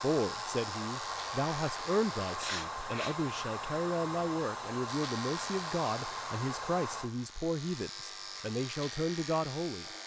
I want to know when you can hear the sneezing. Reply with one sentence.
You can hear the sneezing from 2.4 to 3.1 s.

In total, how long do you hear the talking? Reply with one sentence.
The talking can be heard for 10 seconds in total.